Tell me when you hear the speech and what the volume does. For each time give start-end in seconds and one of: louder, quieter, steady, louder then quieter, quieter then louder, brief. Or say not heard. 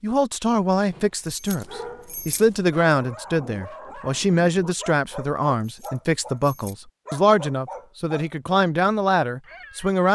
0.0-10.0 steady.